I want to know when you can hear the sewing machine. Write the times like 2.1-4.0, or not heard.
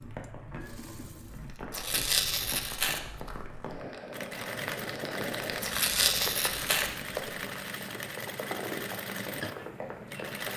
0.0-1.6, 4.1-10.5.